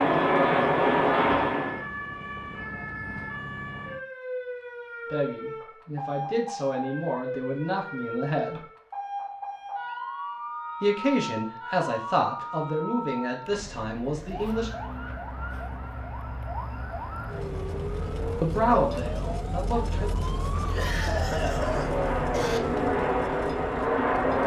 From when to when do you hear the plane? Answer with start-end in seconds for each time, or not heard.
0.0-1.9, 21.4-24.4.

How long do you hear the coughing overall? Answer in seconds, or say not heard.
2 s.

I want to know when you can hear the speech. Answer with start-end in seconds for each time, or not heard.
5.1-8.7, 10.8-14.7, 18.4-20.1.